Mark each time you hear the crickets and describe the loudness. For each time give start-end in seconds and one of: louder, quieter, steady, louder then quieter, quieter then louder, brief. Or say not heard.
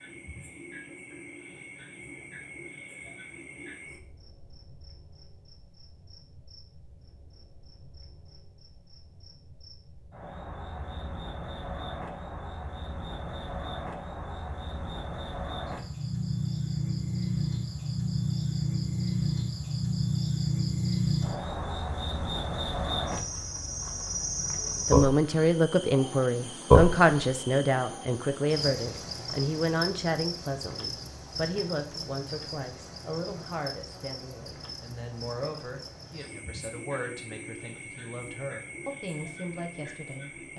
0.0-40.5 louder then quieter.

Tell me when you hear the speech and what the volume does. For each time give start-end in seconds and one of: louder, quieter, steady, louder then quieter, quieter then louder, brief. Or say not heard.
24.9-40.5 quieter.